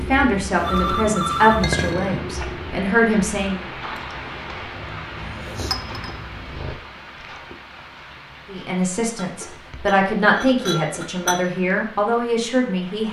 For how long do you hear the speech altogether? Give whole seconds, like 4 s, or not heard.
8 s.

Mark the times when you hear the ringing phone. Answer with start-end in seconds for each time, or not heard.
0.6-1.8.